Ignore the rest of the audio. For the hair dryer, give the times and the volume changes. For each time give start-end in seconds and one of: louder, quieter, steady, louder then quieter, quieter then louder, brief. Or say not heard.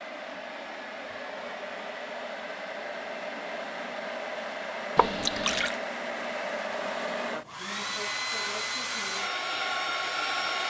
0.0-10.6 louder.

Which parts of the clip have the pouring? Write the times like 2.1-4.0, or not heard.
5.0-5.8.